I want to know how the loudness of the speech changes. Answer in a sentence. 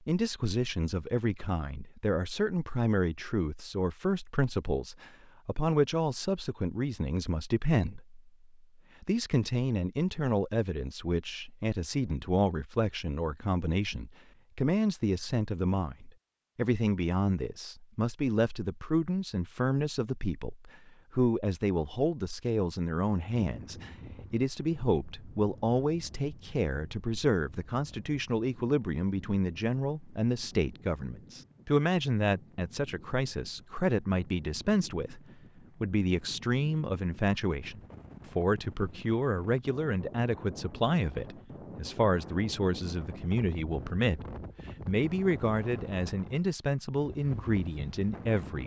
The loudness of the speech stays about the same.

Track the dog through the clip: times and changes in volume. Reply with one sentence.
You can't hear the dog here.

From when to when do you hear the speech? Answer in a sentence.
The speech can be heard from 0.1 to 8.2 s, from 9.0 to 35.2 s, from 35.8 to 44.2 s and from 44.9 to 48.6 s.